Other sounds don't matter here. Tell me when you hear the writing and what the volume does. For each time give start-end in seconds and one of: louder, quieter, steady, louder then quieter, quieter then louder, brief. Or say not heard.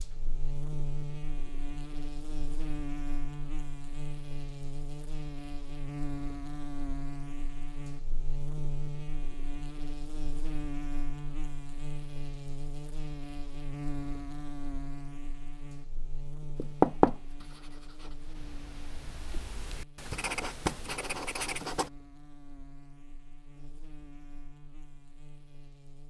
16.6-21.9 quieter then louder.